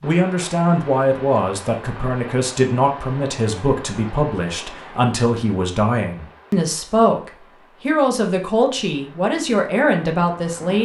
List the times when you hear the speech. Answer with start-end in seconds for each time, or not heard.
0.0-10.8.